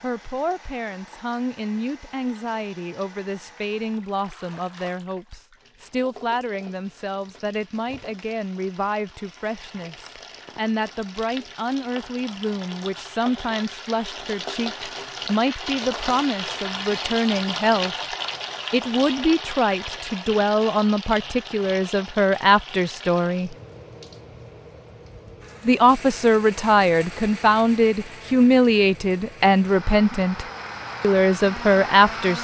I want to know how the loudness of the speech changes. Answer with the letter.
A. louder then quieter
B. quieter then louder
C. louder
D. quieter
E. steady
C.